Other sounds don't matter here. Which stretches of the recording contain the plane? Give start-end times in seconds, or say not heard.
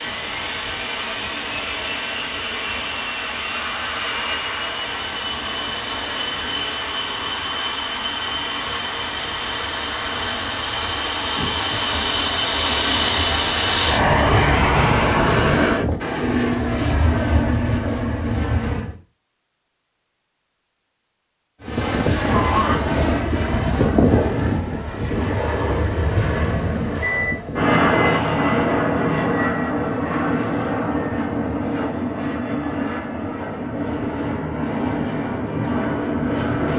0.0-18.9, 21.6-36.7.